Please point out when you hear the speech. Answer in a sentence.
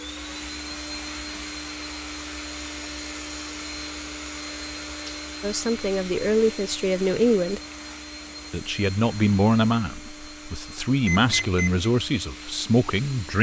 The speech can be heard from 5.4 to 7.6 s and from 8.5 to 13.3 s.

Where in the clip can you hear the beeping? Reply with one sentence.
The beeping can be heard from 11.0 to 11.9 s.